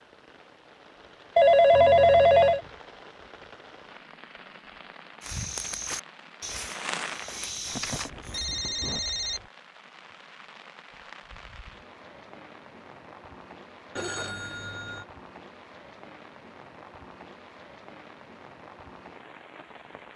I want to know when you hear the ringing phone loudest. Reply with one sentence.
The loudest moment of the ringing phone is at 2 seconds.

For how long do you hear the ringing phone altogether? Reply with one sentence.
The ringing phone can be heard for 4 seconds in total.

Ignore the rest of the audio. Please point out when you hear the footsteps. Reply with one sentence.
The footsteps can be heard from 5.2 to 8.1 s.